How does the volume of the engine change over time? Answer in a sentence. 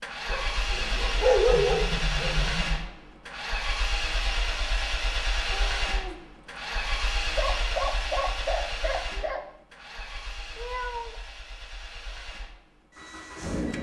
The volume of the engine goes down.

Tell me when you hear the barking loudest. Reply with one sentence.
The volume of the barking peaks at 1 second.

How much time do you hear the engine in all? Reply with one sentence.
You can hear the engine for 14 seconds altogether.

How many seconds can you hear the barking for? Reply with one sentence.
You can hear the barking for 4 seconds altogether.